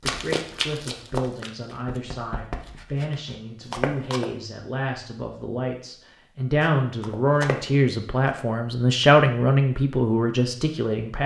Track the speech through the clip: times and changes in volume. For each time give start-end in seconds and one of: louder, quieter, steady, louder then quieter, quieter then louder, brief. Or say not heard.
0.0-11.2 louder.